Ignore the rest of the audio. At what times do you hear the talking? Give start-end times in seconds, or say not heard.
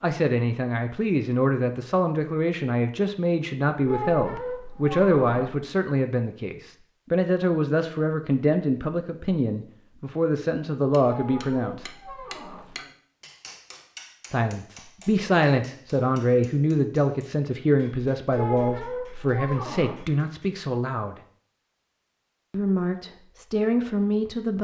0.0-11.8, 14.3-21.1, 22.5-24.6.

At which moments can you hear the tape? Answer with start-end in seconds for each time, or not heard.
not heard.